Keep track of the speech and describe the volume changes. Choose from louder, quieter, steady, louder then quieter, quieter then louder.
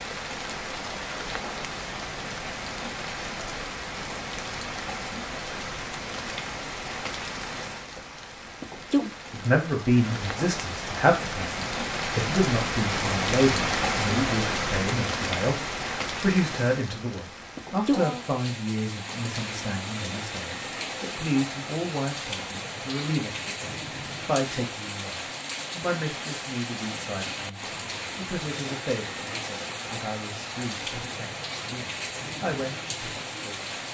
quieter.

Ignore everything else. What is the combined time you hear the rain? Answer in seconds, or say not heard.
34 s.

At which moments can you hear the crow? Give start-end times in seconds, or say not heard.
not heard.